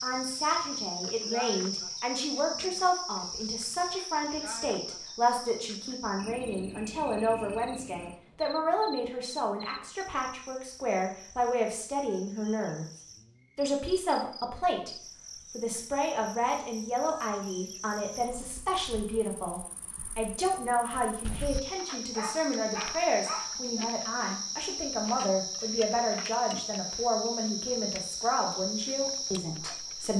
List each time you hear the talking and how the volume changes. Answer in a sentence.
You can hear the talking from 0.0 to 12.8 s, at a steady volume; and from 13.6 to 30.1 s, at a steady volume.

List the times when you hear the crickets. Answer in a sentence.
You can hear the crickets from 0.0 to 30.1 s.